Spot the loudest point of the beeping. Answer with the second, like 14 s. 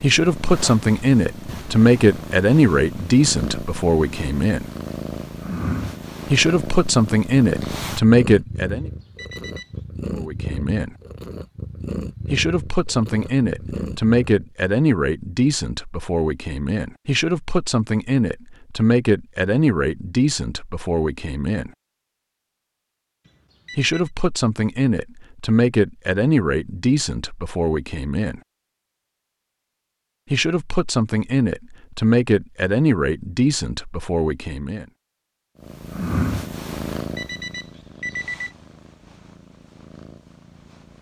38 s.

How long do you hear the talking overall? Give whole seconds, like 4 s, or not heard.
27 s.